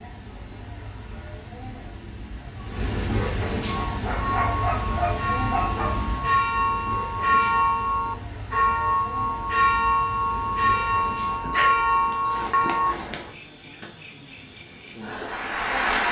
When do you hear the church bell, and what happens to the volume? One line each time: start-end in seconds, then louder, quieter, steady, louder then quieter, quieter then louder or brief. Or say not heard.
3.6-12.9 louder.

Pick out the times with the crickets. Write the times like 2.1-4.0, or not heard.
0.0-16.0.